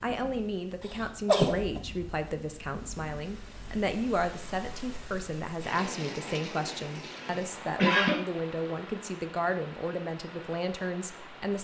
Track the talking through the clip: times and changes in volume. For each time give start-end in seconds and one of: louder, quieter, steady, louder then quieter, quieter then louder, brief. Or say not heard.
0.0-11.5 steady.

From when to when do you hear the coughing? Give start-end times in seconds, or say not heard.
1.2-1.8, 7.1-8.2.